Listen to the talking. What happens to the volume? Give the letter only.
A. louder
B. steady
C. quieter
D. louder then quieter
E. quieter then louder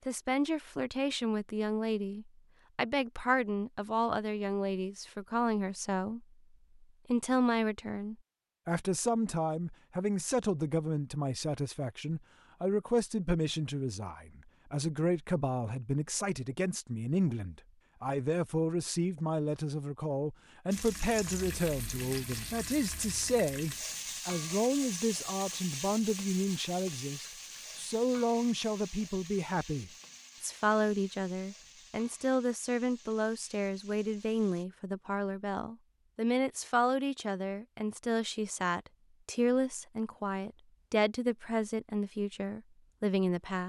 B.